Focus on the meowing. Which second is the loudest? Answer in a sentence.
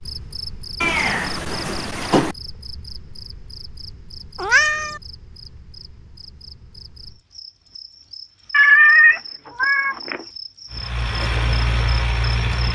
The volume of the meowing peaks at 9 seconds.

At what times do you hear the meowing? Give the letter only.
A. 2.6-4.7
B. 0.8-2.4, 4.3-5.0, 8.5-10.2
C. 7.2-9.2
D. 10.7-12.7
B.